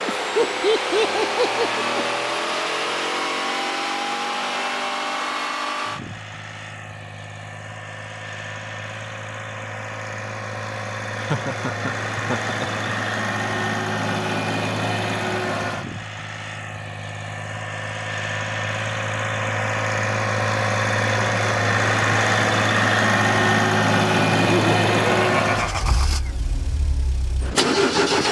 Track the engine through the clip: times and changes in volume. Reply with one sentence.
You can hear the engine from 0.0 to 28.2 s, getting quieter then louder.